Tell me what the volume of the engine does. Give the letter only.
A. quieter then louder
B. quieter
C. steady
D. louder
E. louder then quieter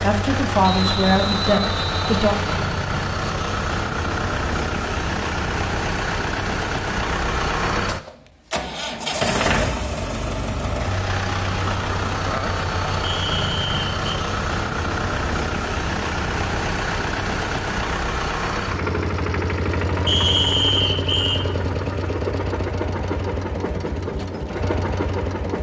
C.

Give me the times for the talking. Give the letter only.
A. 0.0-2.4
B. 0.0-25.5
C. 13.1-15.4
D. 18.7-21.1
A.